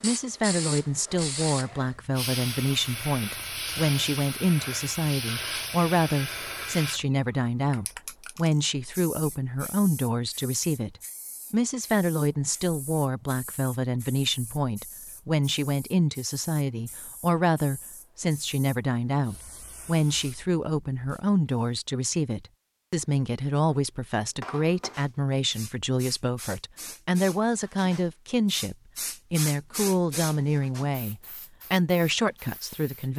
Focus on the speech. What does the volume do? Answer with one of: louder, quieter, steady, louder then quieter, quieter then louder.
steady.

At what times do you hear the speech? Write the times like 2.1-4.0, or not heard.
0.0-33.1.